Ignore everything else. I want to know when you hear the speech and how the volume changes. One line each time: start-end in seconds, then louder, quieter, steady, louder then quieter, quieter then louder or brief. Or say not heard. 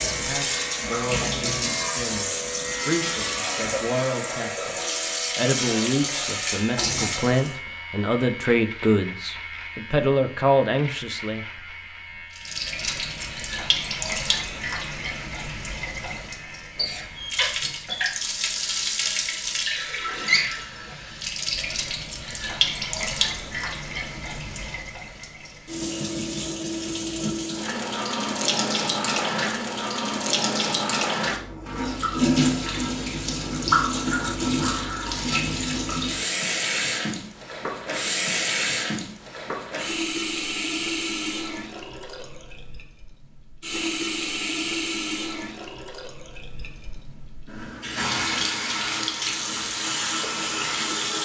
0.1-11.4 louder.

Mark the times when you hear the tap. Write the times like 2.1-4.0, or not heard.
0.0-7.5, 12.3-51.2.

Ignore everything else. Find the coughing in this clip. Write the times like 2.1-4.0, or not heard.
not heard.